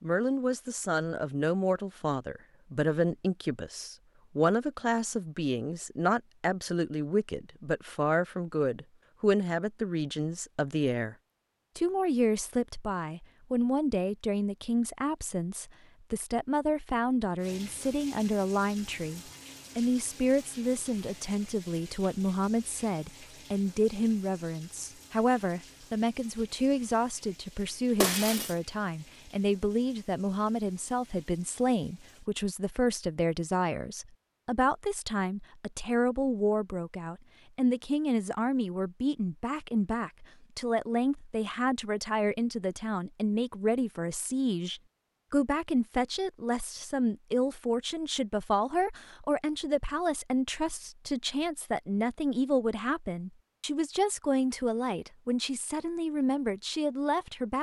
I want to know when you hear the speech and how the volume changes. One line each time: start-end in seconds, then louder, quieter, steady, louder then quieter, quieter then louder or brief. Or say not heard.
0.0-11.2 steady
11.8-57.5 steady.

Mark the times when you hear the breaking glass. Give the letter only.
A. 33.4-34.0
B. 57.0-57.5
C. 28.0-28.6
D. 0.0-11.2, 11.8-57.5
C.